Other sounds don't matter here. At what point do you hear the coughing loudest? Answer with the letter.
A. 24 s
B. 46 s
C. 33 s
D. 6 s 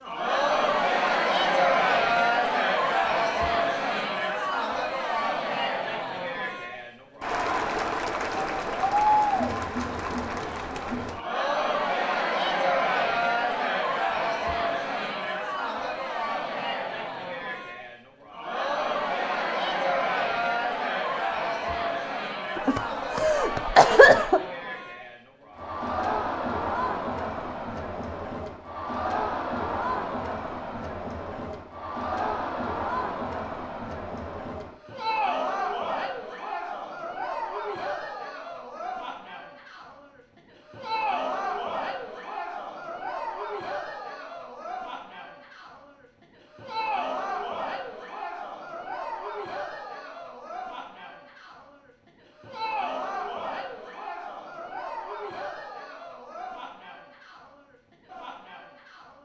A.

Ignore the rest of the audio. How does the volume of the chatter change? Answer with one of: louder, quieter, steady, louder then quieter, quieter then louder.
quieter.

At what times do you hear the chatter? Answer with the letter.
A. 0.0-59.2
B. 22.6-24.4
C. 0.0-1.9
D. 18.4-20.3
A.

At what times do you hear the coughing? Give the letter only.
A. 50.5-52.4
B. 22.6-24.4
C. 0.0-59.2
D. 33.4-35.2
B.